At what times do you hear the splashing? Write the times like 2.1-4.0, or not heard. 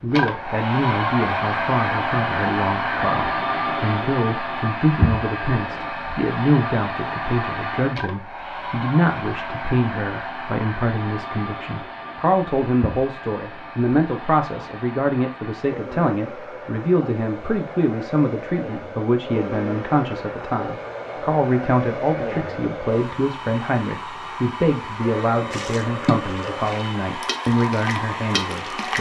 25.5-28.9.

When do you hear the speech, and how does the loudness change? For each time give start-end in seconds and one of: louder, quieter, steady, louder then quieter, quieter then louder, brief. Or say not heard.
0.0-28.9 steady.